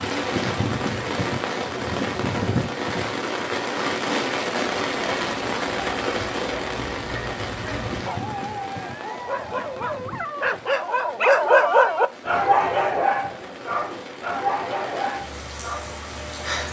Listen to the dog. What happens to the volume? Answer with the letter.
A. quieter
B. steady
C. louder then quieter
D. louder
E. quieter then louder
C.